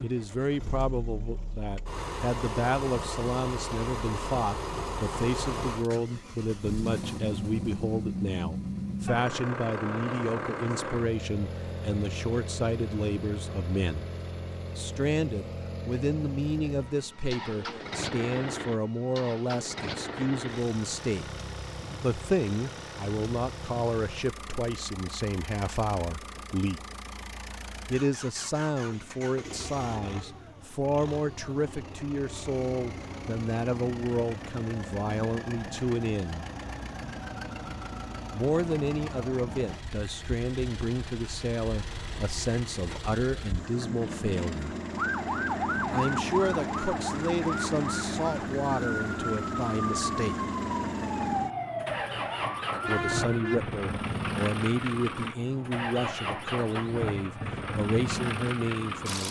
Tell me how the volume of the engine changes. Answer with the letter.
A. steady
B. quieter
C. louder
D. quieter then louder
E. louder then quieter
D.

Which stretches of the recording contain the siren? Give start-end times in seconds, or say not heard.
45.0-53.6.